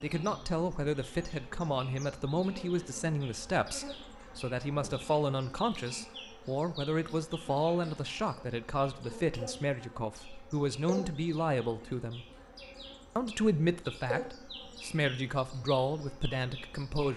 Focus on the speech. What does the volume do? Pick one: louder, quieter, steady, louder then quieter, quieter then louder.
steady.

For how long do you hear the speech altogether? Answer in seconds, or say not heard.
16 s.